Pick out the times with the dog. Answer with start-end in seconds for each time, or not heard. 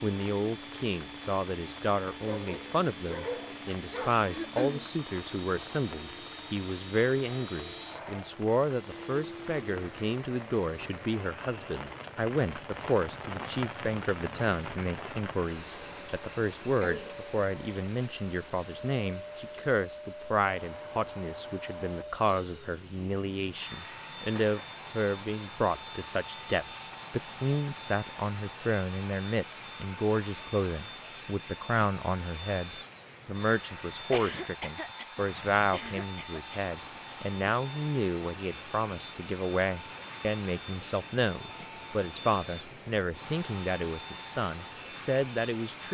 2.2-4.2.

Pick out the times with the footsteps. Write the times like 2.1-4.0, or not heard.
not heard.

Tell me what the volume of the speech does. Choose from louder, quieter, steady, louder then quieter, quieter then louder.
steady.